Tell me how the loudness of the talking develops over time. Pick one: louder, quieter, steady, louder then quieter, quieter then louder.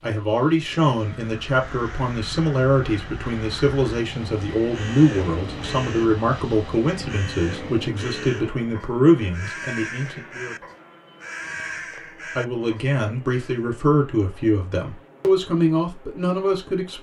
steady.